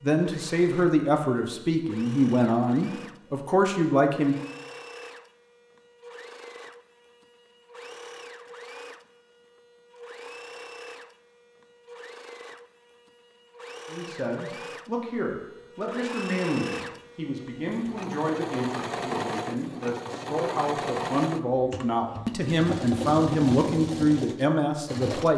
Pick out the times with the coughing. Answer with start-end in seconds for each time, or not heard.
not heard.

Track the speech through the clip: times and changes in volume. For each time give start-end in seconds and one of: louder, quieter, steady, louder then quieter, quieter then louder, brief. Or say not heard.
0.0-4.3 steady
13.8-25.3 louder.